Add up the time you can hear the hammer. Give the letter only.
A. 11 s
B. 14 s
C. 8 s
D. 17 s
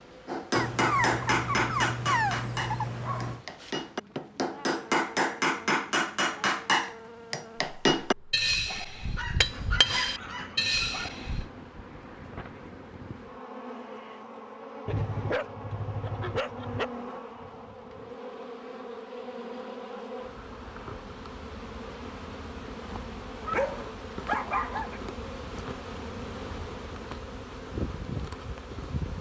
A.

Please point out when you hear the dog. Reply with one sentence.
You can hear the dog from 0.6 to 3.4 s, from 9.2 to 11.2 s, from 14.8 to 16.9 s and from 23.4 to 25.0 s.